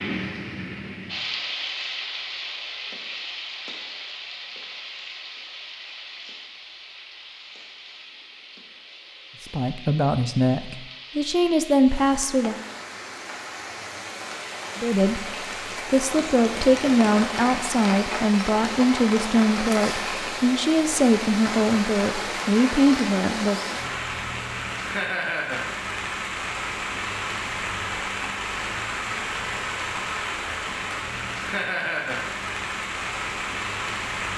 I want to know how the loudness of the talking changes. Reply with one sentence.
The volume of the talking stays about the same.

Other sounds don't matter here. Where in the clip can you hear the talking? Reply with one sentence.
The talking can be heard from 9.5 to 12.6 s and from 14.8 to 23.8 s.